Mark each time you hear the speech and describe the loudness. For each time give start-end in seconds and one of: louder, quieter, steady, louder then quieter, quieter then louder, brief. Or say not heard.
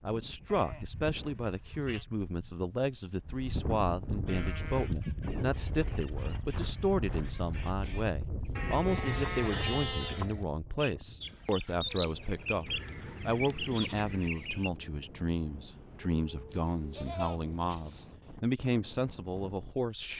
0.0-20.1 steady.